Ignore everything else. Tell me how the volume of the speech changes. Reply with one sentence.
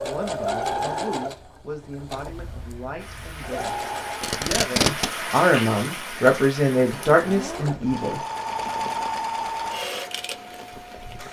The loudness of the speech goes up.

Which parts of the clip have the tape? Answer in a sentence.
You can hear the tape from 4.2 to 5.1 s.